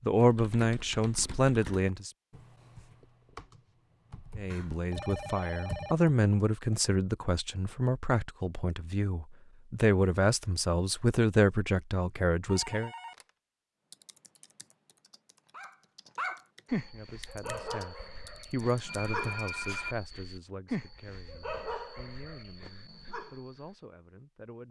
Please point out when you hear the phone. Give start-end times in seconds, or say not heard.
4.5-6.0, 12.4-13.3, 18.8-19.9.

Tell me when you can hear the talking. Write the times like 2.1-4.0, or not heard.
0.0-2.1, 4.3-12.9, 16.9-24.6.